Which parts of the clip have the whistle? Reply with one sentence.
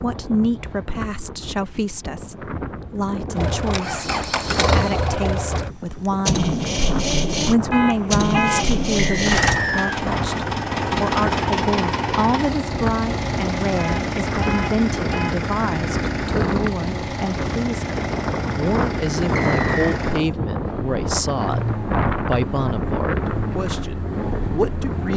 You can hear the whistle from 8.9 to 10.0 s and from 19.4 to 20.0 s.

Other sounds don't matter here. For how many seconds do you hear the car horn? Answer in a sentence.
The car horn can be heard for 3 seconds in total.